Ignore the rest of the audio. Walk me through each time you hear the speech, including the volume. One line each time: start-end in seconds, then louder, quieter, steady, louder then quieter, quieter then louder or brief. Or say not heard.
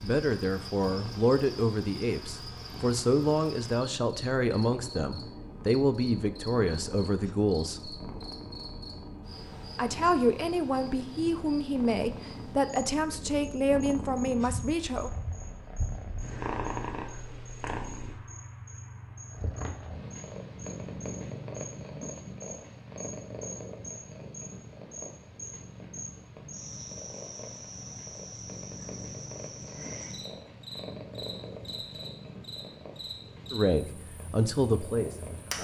0.0-8.0 steady
9.8-15.1 steady
33.5-35.5 brief.